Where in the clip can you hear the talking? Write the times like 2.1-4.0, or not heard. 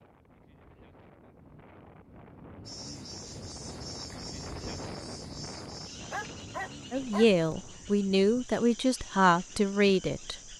6.9-10.5.